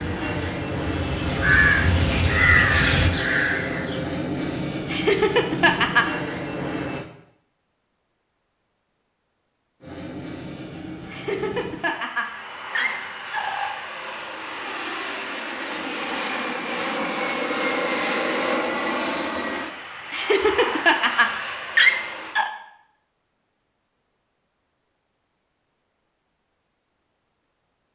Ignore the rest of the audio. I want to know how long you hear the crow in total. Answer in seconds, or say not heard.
4 s.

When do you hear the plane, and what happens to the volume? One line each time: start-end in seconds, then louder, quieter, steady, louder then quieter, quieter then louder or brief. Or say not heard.
0.0-7.0 steady
9.8-22.4 louder then quieter.